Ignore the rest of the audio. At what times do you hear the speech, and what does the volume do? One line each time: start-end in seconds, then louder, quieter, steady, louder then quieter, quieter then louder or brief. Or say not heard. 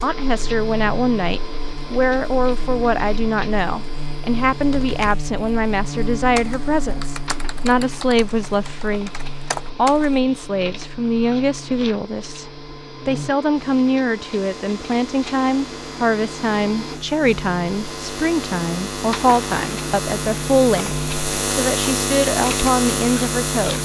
0.0-23.8 steady.